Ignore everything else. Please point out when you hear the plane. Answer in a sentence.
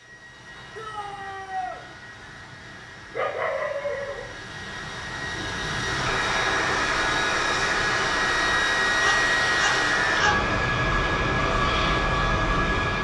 You can hear the plane from 0.0 to 12.9 s.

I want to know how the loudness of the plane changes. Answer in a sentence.
The loudness of the plane goes up.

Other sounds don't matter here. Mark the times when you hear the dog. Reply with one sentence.
The dog can be heard from 2.7 to 4.2 s and from 9.0 to 10.3 s.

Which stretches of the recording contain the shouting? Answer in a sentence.
You can hear the shouting from 0.8 to 1.8 s.